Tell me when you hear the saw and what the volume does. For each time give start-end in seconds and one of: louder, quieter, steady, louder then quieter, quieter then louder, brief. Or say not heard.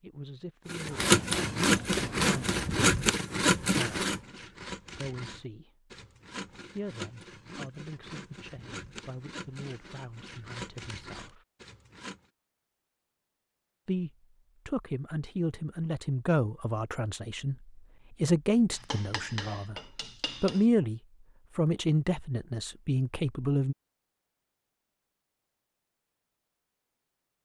0.7-12.2 quieter.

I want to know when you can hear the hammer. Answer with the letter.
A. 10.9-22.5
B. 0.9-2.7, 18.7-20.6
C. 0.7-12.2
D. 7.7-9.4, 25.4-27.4
B.